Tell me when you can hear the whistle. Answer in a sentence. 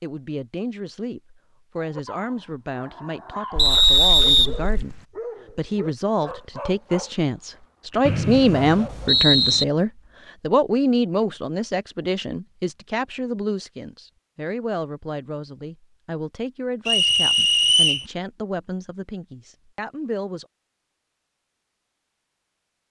The whistle can be heard from 3.5 to 5.0 s, from 8.1 to 9.7 s and from 16.9 to 18.1 s.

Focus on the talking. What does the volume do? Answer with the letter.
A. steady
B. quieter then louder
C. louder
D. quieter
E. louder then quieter
E.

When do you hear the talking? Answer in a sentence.
You can hear the talking from 0.0 to 20.4 s.